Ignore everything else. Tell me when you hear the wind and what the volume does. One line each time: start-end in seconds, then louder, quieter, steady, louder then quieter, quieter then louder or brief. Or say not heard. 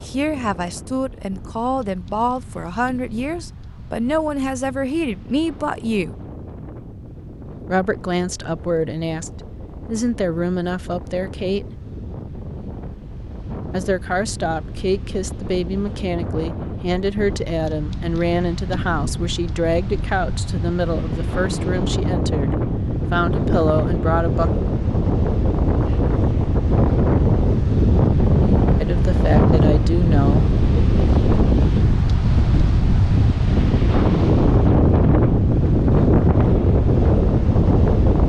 0.0-38.2 louder.